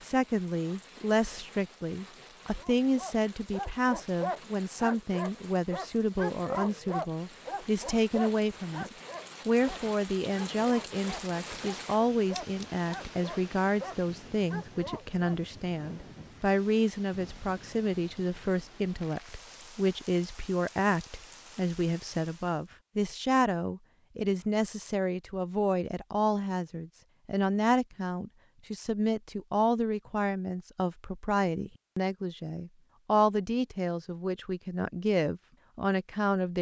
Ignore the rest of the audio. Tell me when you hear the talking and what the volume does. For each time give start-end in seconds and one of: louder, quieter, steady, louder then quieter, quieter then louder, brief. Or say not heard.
0.0-36.5 steady.